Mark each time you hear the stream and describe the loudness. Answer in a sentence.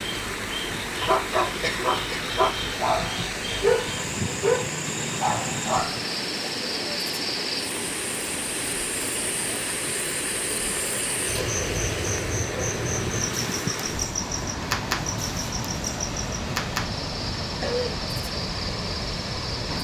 The stream can be heard from 0.0 to 19.7 s, at a steady volume.